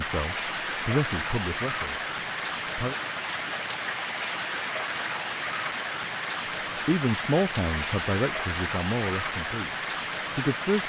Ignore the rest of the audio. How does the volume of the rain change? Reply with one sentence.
The volume of the rain stays about the same.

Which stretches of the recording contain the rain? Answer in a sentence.
You can hear the rain from 0.0 to 10.8 s.